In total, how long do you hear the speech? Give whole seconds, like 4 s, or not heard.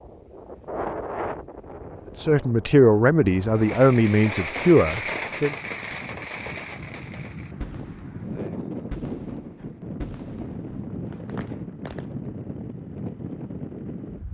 3 s.